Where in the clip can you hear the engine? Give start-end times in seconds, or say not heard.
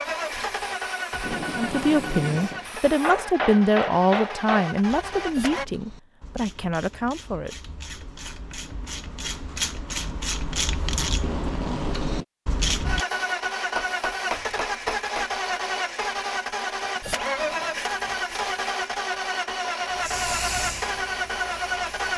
0.0-5.7, 12.8-22.1.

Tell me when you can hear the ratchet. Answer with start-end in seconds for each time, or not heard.
4.8-13.1.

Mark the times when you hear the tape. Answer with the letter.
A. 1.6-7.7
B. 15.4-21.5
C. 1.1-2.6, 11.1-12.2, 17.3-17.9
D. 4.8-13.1
C.